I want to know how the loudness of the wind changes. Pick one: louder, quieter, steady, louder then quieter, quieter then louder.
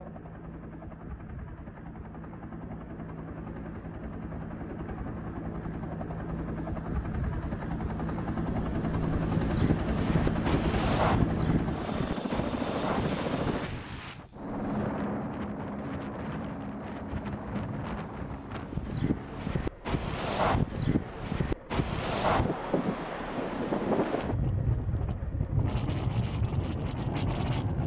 quieter then louder.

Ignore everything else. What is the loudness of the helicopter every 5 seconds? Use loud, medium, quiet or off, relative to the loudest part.
medium, loud, loud, medium, quiet, quiet.